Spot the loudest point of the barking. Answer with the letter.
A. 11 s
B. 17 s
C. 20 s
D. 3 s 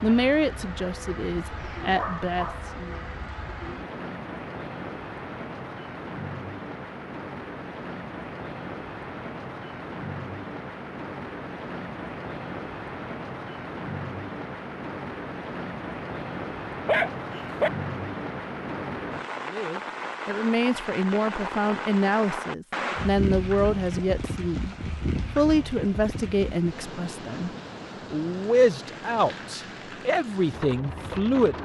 B.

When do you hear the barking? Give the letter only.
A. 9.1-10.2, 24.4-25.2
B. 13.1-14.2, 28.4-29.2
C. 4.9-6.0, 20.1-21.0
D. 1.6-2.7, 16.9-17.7
D.